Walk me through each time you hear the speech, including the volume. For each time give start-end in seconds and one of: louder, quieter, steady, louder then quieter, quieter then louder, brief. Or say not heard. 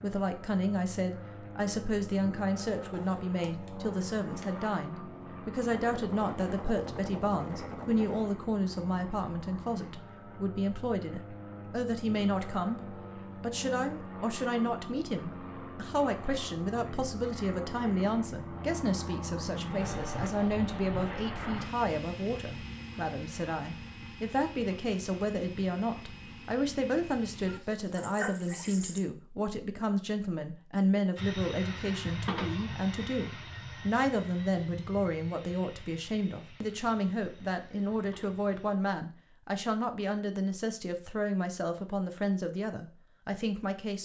0.0-44.0 steady.